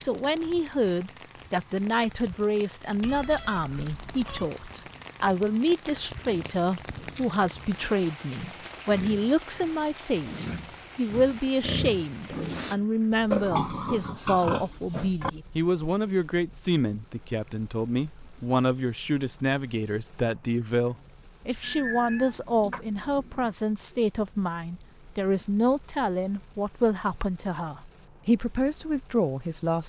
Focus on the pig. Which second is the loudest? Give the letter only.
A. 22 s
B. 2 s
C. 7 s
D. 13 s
D.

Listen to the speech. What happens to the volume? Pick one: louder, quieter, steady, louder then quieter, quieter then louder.
steady.